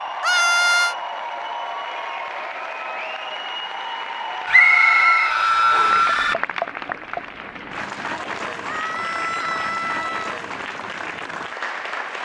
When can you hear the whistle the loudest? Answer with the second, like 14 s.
5 s.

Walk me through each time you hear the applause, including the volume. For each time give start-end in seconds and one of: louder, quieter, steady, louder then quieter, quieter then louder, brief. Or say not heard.
0.0-12.2 steady.